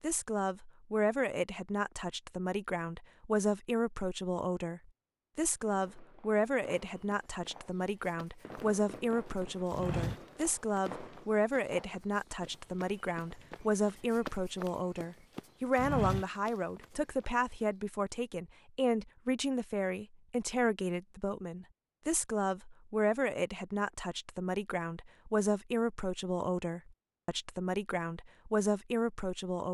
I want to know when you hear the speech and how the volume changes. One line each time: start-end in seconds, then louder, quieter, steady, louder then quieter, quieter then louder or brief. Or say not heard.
0.0-29.6 steady.